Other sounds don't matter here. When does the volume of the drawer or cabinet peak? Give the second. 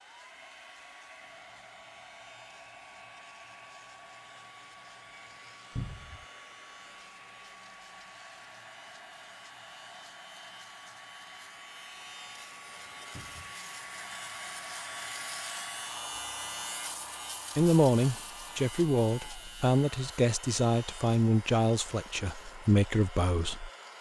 6 s.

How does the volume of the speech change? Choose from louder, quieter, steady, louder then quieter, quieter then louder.
steady.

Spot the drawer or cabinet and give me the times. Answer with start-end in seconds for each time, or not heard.
5.8-6.2, 13.2-13.6.